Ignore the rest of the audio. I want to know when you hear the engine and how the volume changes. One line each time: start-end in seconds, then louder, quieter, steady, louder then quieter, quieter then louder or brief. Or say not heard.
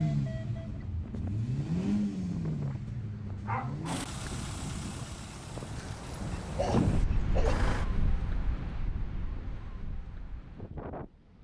0.0-7.9 quieter.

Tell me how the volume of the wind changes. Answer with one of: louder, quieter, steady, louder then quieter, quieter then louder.
louder then quieter.